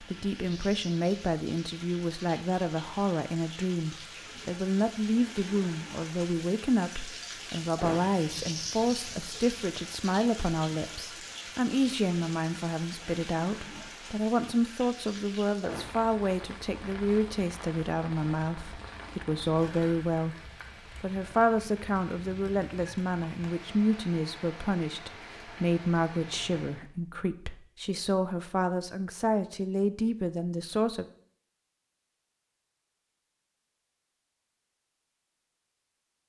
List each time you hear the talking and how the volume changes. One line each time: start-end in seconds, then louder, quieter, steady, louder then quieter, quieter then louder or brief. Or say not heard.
0.0-31.1 steady.